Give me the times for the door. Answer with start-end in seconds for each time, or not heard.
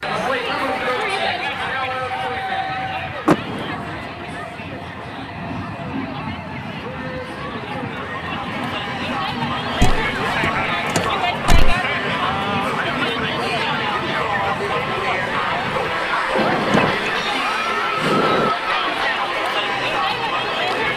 3.2-4.0, 9.8-11.8, 16.4-17.1, 17.9-18.5.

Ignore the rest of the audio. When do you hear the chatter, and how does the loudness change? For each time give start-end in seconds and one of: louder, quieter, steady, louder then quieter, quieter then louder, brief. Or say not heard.
0.0-20.9 quieter then louder.